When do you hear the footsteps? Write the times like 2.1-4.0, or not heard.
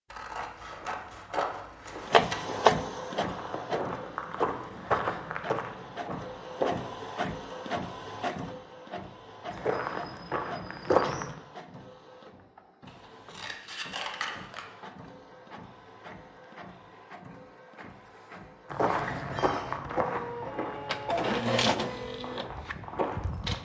0.5-6.8, 9.5-11.3, 18.6-23.6.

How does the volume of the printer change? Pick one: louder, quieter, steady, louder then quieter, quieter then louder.
quieter then louder.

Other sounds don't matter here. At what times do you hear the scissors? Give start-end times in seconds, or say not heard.
0.1-2.5, 12.8-14.7.